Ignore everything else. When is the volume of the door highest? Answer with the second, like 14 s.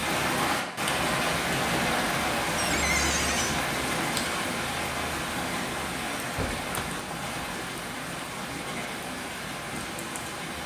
3 s.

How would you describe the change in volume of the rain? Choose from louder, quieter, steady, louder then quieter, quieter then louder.
quieter.